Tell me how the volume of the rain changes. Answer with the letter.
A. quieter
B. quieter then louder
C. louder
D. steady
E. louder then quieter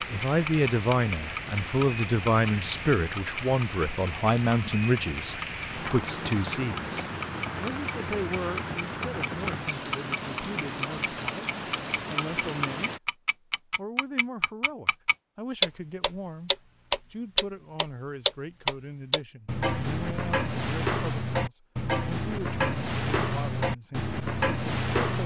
D.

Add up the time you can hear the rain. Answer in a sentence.
You can hear the rain for 13 seconds altogether.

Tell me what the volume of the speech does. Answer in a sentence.
The loudness of the speech goes down.